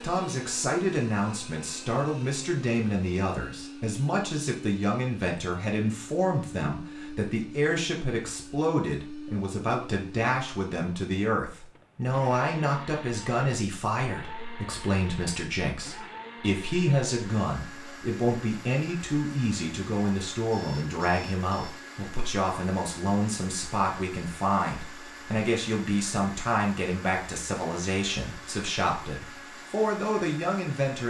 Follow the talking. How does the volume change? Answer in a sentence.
The volume of the talking stays about the same.